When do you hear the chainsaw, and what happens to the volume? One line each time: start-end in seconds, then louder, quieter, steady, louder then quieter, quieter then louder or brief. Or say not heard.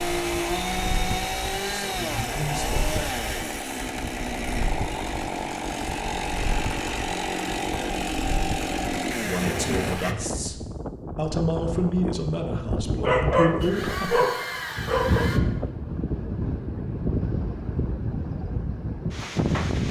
0.0-10.2 steady
13.6-15.4 brief.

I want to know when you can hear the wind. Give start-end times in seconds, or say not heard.
0.0-19.8.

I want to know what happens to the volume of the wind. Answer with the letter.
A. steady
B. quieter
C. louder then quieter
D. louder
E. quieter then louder
D.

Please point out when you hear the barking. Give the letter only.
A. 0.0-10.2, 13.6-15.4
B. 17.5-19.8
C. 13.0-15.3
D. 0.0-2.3
C.